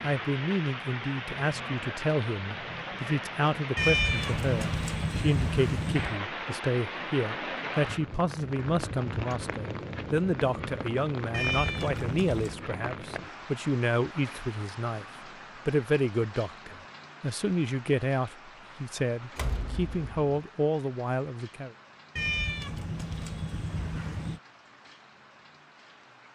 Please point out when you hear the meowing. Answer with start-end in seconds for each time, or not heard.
3.8-6.2, 11.3-12.7, 22.1-24.4.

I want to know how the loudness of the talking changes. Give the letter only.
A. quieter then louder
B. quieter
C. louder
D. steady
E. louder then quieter
D.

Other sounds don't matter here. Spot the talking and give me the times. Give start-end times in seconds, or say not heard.
0.0-15.1, 15.7-21.7.